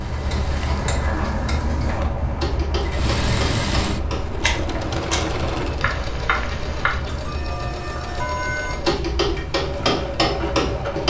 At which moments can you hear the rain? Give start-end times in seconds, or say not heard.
0.0-11.0.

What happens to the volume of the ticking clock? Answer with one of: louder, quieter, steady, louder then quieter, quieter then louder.
louder.